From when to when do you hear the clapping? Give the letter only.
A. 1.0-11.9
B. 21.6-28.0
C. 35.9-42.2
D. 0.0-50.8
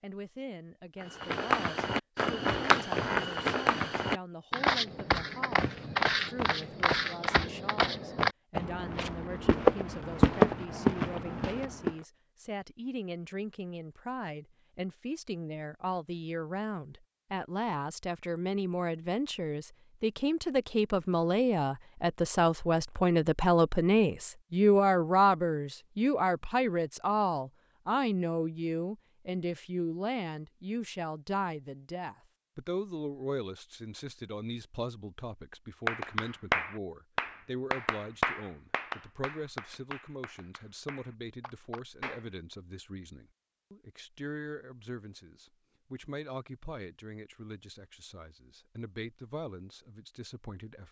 C.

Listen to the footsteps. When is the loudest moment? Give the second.
10 s.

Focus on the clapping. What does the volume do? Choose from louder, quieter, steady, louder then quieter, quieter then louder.
quieter.